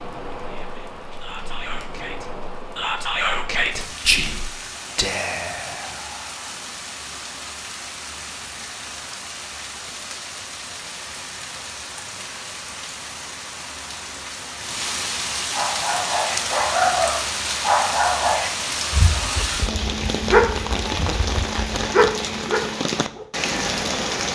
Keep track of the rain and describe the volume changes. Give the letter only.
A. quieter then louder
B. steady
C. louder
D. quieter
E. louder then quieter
C.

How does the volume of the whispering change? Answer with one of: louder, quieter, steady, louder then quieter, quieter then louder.
louder then quieter.